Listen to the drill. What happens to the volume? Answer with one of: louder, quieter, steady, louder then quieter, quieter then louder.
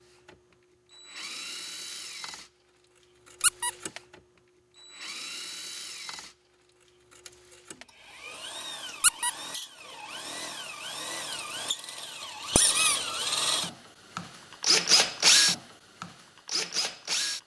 louder.